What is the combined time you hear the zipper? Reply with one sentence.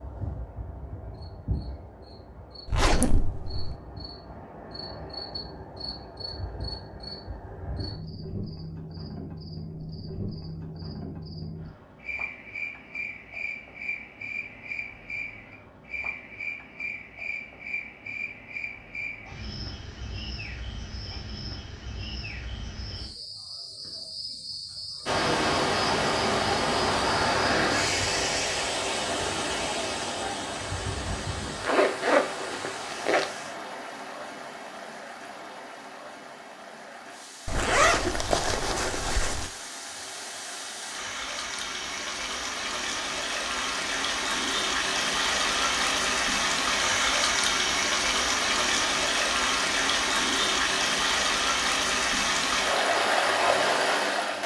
The zipper can be heard for 5 seconds in total.